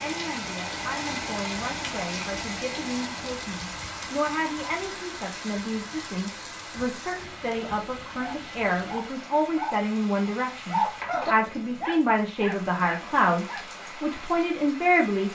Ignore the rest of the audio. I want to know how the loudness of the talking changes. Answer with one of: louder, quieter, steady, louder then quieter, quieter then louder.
louder.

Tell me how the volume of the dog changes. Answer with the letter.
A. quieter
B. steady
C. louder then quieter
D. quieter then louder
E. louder
C.